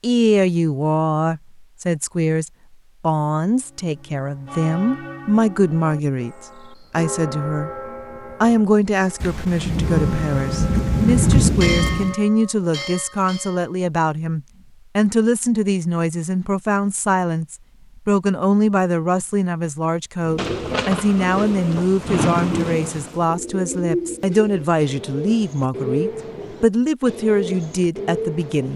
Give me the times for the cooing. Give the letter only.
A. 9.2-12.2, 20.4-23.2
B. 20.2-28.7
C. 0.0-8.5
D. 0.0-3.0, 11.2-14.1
B.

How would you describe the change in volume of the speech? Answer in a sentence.
The loudness of the speech stays about the same.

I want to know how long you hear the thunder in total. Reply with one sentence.
You can hear the thunder for 6 seconds altogether.